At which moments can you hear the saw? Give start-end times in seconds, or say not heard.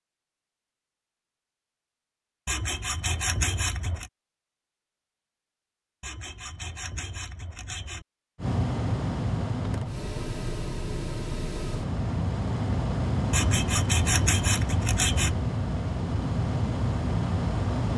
2.5-4.1, 6.0-8.1, 13.3-15.3.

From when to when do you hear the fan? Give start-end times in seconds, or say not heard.
8.3-17.9.